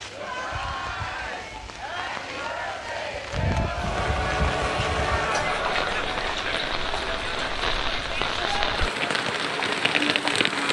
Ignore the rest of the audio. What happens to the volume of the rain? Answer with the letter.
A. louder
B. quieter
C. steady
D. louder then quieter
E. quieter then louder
A.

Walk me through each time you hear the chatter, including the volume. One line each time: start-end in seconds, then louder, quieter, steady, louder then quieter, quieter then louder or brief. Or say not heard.
0.0-10.6 louder then quieter.